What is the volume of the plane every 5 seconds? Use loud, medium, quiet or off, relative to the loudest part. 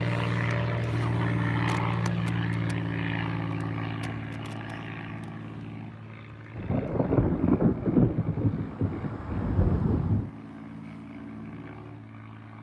loud, quiet, quiet.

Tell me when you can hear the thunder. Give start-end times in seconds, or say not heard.
6.5-10.3.